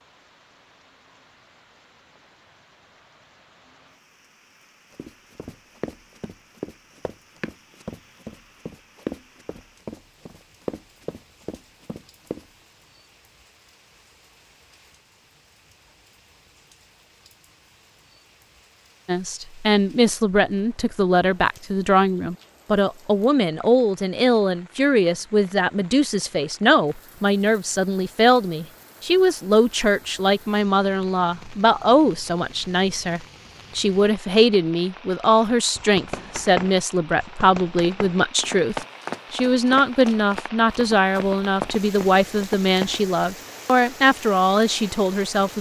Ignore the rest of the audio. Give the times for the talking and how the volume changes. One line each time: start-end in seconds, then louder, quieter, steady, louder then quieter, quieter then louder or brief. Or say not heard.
19.1-45.5 steady.